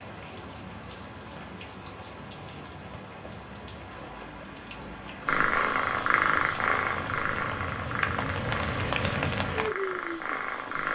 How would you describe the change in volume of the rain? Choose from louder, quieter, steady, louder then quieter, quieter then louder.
louder.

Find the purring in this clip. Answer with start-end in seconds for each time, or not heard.
5.2-10.9.